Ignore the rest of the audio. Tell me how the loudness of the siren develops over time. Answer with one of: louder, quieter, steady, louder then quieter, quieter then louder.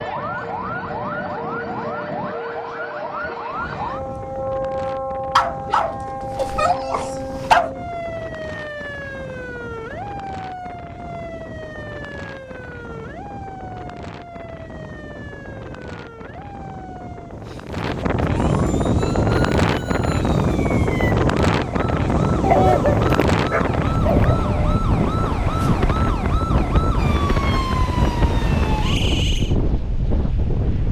quieter then louder.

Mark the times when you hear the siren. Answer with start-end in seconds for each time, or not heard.
0.0-29.6.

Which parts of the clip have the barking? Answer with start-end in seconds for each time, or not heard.
5.3-7.8, 22.4-24.4.